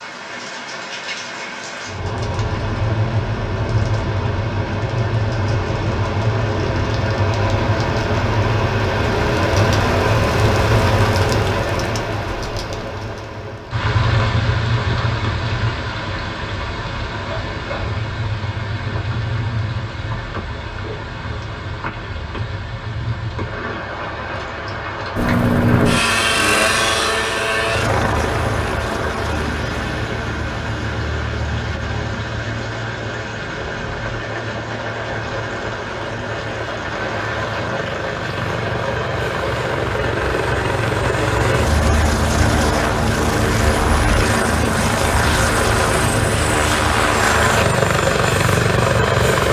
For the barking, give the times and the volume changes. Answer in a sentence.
The barking can't be heard in this clip.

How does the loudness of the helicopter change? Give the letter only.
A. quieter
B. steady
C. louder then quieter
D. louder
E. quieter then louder
E.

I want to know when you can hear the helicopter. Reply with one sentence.
You can hear the helicopter from 25.1 to 49.4 s.